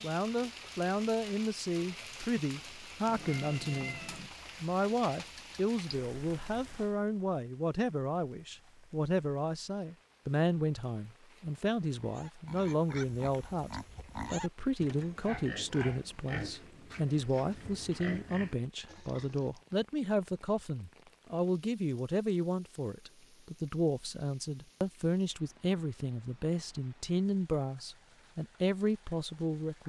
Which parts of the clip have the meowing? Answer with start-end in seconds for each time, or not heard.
3.0-4.3.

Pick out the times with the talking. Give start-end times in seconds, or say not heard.
0.0-4.0, 4.6-29.8.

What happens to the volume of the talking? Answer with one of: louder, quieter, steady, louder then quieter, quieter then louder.
steady.